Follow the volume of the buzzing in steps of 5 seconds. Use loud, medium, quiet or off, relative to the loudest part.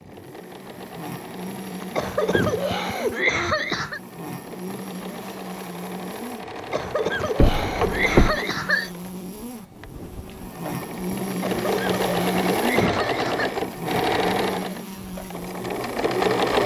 medium, medium, loud, medium.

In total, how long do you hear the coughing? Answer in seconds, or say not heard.
7 s.